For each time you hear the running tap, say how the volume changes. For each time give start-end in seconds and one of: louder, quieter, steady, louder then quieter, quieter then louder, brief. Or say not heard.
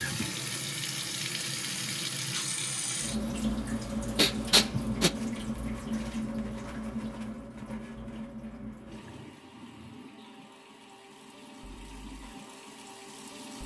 0.0-13.6 quieter.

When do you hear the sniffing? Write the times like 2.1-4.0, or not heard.
4.2-5.1.